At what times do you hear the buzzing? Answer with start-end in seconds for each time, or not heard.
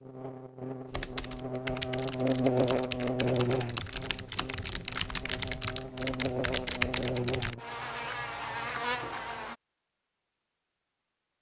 0.0-9.6.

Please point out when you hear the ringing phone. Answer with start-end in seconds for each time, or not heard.
not heard.